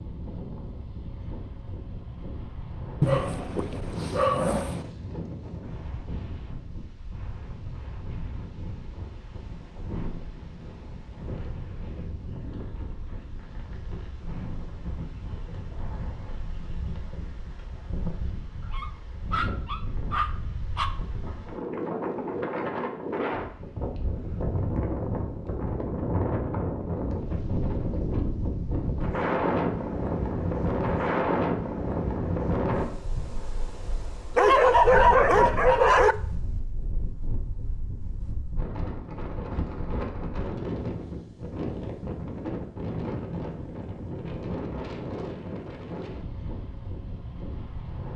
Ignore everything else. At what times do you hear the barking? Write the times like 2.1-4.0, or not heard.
3.0-4.9, 18.7-20.9, 34.4-36.1.